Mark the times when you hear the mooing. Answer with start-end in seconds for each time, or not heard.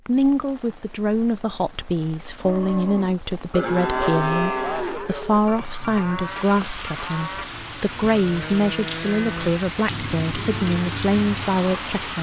2.4-11.8.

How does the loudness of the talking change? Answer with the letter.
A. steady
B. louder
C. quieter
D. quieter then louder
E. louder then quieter
A.